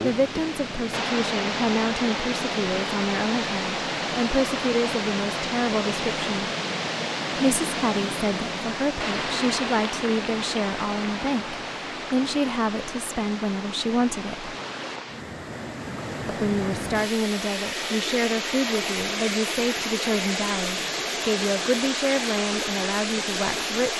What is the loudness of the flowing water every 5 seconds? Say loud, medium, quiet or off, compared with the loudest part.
loud, loud, medium, loud, loud.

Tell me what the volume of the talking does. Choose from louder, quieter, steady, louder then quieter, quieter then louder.
steady.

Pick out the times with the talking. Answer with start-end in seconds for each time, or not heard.
0.0-6.5, 7.3-14.6, 16.2-23.9.